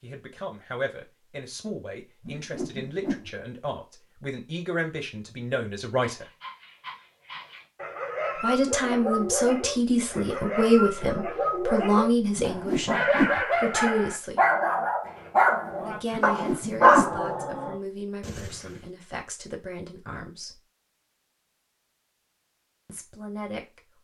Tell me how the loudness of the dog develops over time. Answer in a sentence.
The volume of the dog goes up.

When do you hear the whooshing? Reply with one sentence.
The whooshing can be heard from 2.2 to 3.3 s, from 12.3 to 13.4 s and from 16.1 to 17.2 s.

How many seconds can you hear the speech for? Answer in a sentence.
The speech can be heard for 18 seconds in total.